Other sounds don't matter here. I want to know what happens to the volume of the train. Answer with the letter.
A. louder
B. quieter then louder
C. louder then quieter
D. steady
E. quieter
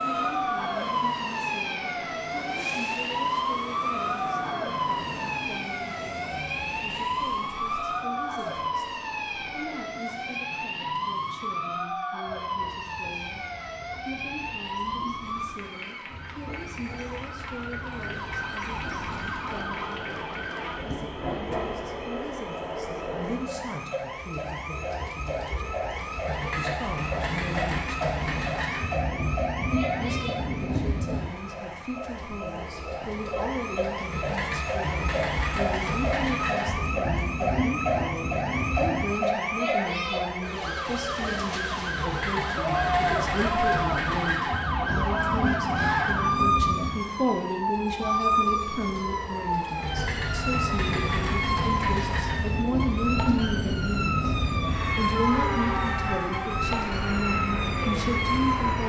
A.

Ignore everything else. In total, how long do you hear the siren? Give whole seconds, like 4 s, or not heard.
59 s.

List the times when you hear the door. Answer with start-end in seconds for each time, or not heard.
not heard.